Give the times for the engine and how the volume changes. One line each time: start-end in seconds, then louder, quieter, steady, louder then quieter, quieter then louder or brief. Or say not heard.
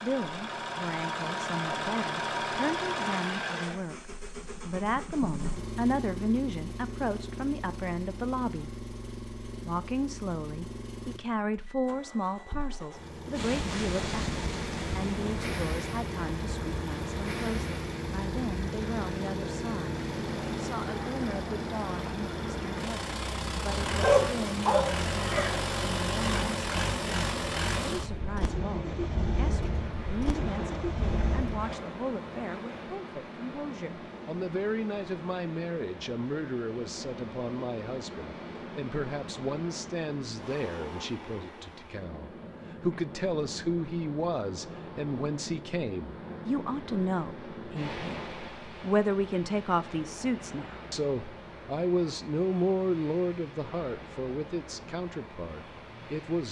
0.0-31.9 quieter then louder.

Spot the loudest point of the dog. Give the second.
24 s.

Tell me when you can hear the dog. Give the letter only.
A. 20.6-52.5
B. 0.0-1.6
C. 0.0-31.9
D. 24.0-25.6
D.